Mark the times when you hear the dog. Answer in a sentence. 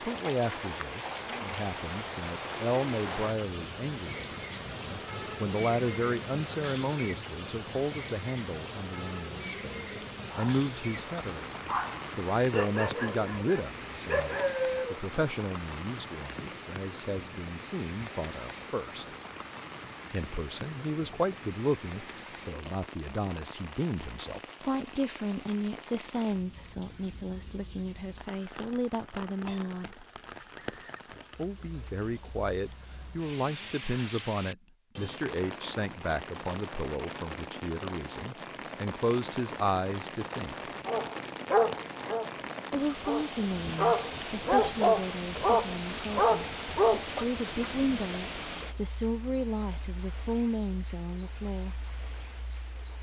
The dog can be heard from 10.3 to 15.0 s and from 40.9 to 47.0 s.